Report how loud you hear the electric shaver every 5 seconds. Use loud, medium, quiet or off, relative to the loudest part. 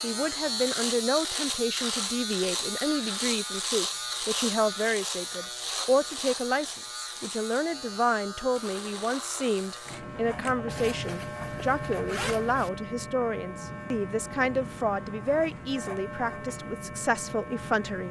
loud, medium, medium, medium.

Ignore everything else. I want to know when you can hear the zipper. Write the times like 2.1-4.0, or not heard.
10.7-12.7.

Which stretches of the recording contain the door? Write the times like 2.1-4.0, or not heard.
not heard.